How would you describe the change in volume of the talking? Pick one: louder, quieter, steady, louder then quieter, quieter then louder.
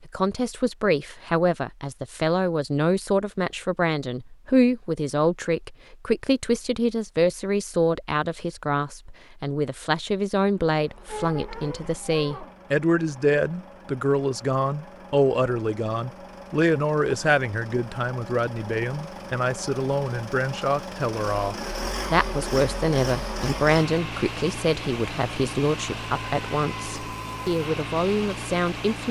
steady.